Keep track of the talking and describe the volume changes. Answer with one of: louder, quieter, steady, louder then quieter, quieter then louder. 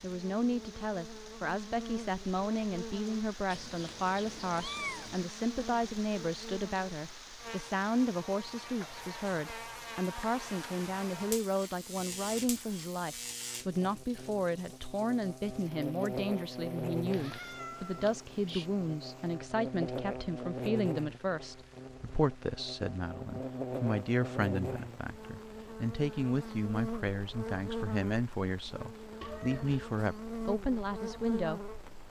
steady.